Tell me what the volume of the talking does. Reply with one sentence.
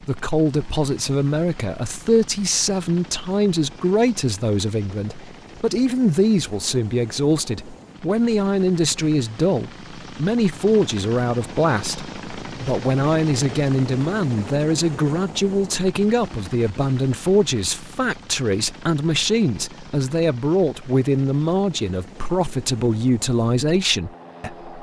The volume of the talking stays about the same.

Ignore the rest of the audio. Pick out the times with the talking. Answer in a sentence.
You can hear the talking from 0.0 to 24.7 s.